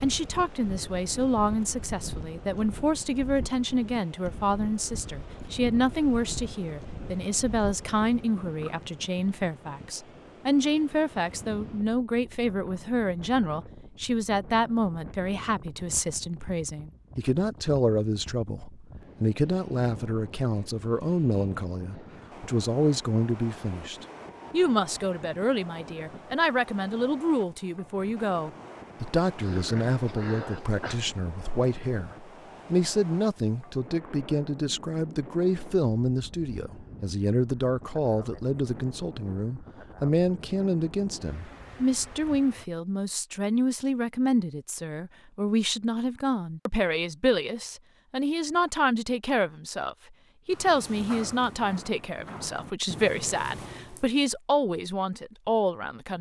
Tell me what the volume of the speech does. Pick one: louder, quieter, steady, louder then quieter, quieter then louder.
steady.